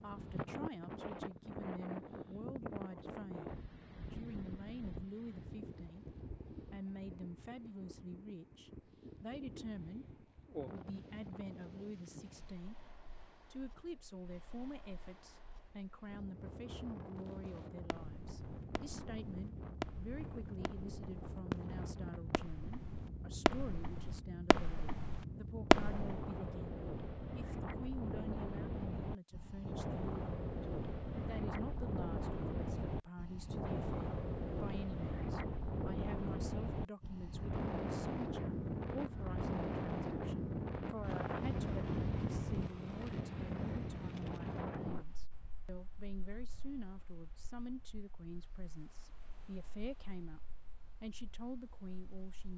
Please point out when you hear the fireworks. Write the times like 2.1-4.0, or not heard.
17.3-26.1.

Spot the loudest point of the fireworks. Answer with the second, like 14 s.
26 s.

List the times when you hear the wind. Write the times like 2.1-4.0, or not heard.
0.0-52.5.